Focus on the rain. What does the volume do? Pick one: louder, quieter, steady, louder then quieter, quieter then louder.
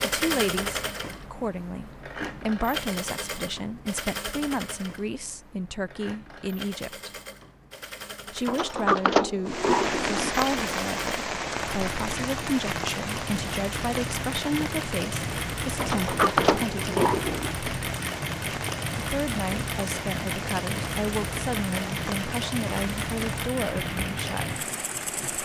quieter.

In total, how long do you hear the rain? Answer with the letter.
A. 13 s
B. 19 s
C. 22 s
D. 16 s
D.